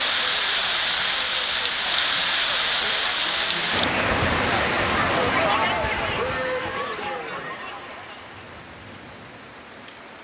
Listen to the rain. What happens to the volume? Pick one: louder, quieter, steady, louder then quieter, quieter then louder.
quieter.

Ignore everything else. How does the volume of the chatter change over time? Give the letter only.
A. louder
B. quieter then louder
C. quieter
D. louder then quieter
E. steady
D.